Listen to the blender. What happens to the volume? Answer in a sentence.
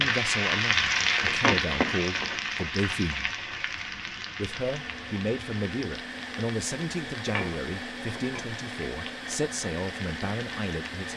The loudness of the blender stays about the same.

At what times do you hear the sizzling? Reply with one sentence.
You can hear the sizzling from 0.0 to 11.1 s.